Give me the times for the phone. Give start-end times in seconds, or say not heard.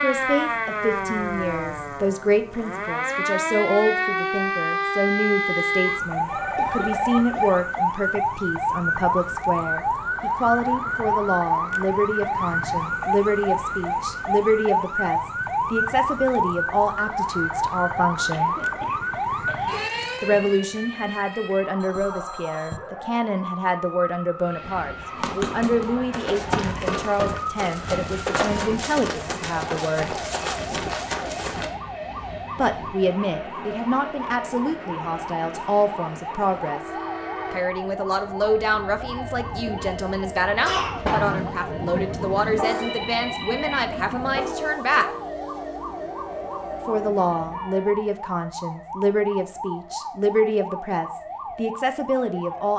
6.2-7.6, 21.8-22.8, 42.8-44.0.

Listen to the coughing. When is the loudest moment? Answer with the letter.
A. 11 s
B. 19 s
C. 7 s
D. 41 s
D.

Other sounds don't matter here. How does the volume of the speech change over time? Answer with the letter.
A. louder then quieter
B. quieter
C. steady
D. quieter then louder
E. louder
C.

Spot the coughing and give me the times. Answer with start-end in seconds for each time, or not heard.
6.5-7.5, 18.3-19.8, 40.6-41.4.